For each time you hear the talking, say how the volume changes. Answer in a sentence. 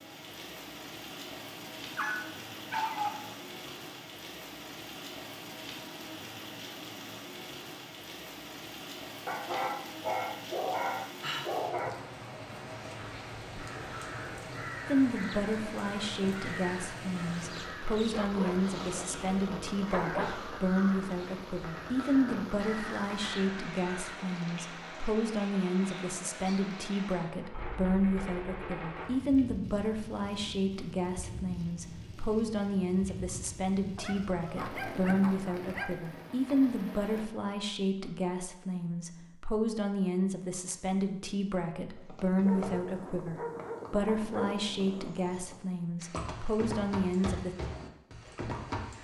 The talking can be heard from 14.8 to 47.5 s, at a steady volume.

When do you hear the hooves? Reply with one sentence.
You can hear the hooves from 42.0 to 49.0 s.